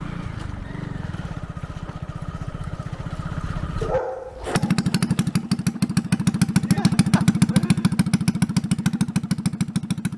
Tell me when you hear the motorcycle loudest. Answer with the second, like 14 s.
7 s.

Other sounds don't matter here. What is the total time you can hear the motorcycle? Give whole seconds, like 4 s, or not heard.
10 s.